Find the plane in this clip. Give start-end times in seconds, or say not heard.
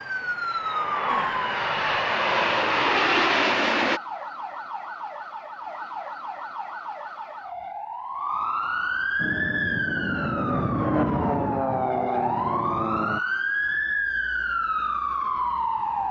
0.0-4.0, 9.2-13.2.